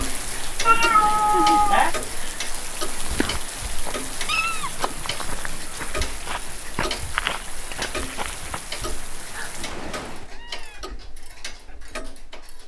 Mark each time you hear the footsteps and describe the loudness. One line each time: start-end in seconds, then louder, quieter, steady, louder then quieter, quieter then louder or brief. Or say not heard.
3.0-8.6 louder.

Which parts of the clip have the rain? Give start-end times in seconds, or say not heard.
0.0-10.3.